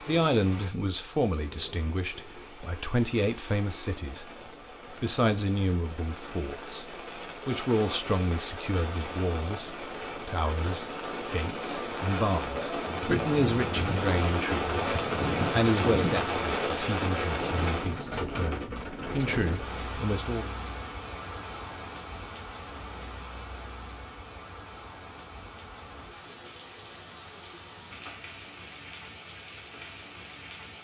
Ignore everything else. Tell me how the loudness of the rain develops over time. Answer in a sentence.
The loudness of the rain goes up, then down.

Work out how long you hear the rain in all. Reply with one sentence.
You can hear the rain for 31 seconds altogether.